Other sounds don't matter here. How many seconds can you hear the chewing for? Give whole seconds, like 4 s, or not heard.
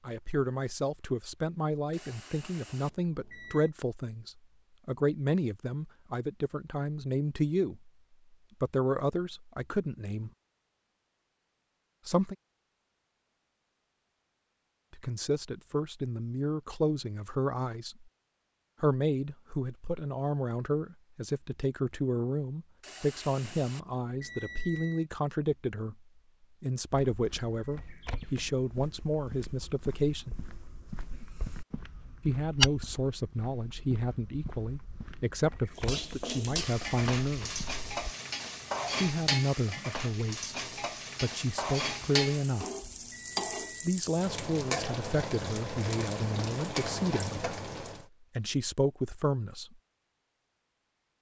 not heard.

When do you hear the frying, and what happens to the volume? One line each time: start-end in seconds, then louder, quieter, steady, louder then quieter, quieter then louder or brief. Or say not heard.
35.7-48.0 steady.